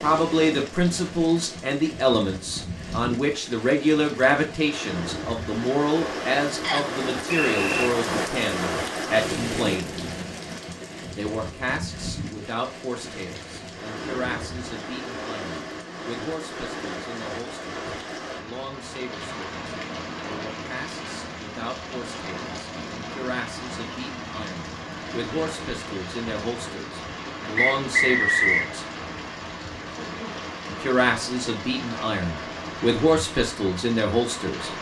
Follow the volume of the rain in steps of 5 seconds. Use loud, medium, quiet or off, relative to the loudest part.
medium, loud, medium, medium, medium, medium, medium.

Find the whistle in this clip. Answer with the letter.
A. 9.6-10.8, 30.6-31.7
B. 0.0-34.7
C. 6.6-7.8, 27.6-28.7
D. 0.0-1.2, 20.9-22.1
C.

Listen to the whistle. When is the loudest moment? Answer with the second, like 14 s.
28 s.